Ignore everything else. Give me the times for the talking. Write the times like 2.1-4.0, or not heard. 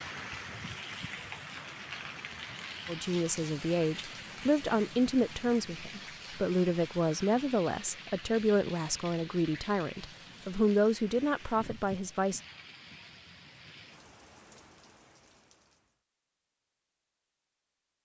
2.9-12.4.